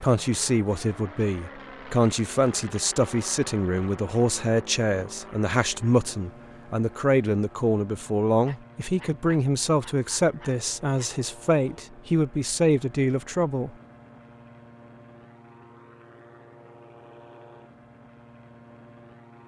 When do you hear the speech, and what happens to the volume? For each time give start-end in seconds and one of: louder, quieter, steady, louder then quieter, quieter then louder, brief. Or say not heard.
0.0-13.7 steady.